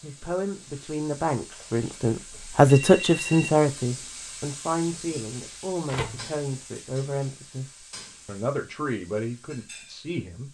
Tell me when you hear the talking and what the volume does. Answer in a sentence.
The talking can be heard from 0.0 to 10.4 s, getting louder then quieter.